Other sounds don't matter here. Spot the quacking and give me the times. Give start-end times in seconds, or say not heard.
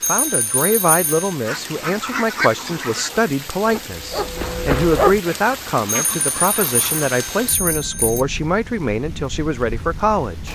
1.4-3.2, 5.3-7.1.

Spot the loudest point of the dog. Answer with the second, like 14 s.
5 s.